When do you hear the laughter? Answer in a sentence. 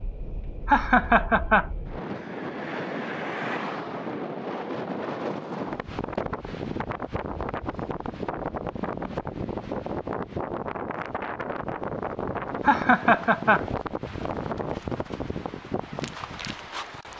The laughter can be heard from 0.7 to 1.7 s and from 12.6 to 14.2 s.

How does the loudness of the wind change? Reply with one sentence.
The volume of the wind stays about the same.